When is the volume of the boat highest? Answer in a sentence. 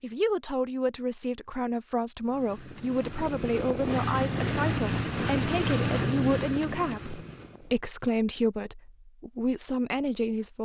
The loudest moment of the boat is at 6 seconds.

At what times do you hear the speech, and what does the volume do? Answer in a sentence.
The speech can be heard from 0.0 to 10.6 s, at a steady volume.